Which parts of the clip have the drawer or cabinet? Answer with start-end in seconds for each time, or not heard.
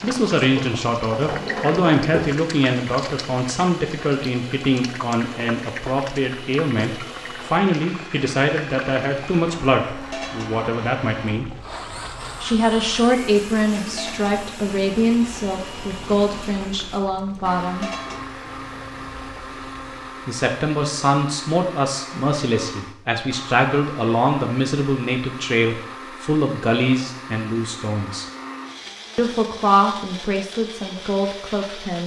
0.6-2.3.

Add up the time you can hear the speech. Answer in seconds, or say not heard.
28 s.